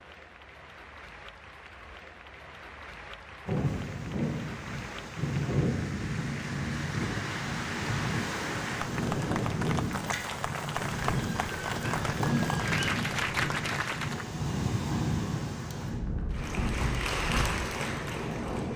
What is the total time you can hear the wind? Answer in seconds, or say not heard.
15 s.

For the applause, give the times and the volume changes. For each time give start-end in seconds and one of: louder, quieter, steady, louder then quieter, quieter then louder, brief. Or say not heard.
0.0-14.2 louder
16.2-18.7 brief.